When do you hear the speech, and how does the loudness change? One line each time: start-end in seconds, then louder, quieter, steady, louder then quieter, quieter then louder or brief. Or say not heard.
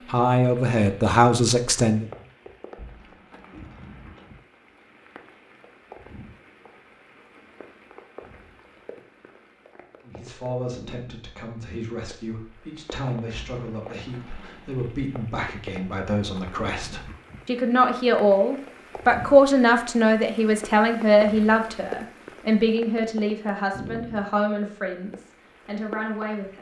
0.1-2.0 brief
10.1-26.5 louder then quieter.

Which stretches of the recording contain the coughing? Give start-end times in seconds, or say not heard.
not heard.